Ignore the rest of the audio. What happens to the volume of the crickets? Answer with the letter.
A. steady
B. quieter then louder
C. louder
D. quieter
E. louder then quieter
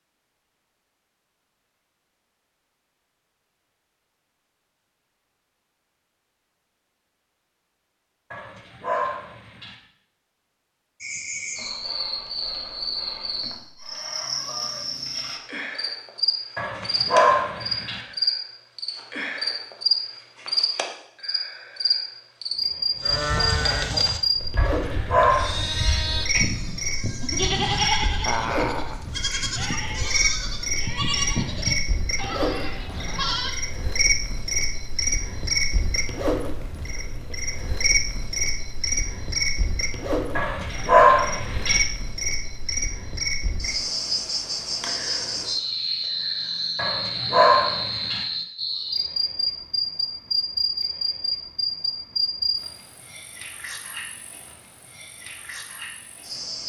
A.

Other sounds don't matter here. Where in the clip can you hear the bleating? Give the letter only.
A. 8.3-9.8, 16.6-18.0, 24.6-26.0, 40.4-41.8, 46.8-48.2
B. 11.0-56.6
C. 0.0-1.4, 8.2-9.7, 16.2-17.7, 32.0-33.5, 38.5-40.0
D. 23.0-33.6
D.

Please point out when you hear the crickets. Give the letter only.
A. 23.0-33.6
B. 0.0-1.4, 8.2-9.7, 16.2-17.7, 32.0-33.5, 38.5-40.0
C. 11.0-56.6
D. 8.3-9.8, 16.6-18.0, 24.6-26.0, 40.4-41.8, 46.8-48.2
C.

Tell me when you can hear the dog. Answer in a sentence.
You can hear the dog from 8.3 to 9.8 s, from 16.6 to 18.0 s, from 24.6 to 26.0 s, from 40.4 to 41.8 s and from 46.8 to 48.2 s.